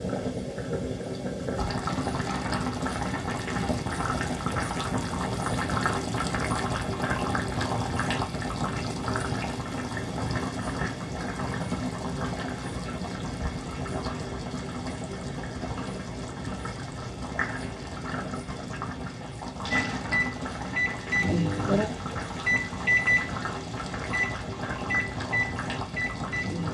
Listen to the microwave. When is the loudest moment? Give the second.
23 s.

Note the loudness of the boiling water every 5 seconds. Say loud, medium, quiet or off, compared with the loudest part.
loud, loud, loud, medium, medium, medium.